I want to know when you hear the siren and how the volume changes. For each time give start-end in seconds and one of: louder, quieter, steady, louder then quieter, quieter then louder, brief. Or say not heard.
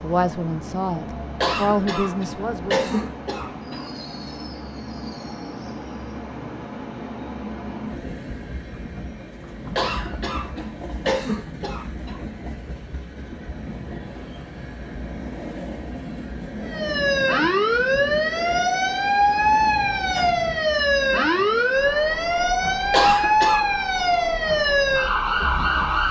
16.6-26.0 steady.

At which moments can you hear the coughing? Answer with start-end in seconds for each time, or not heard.
1.4-3.9, 9.8-12.2, 22.9-23.6.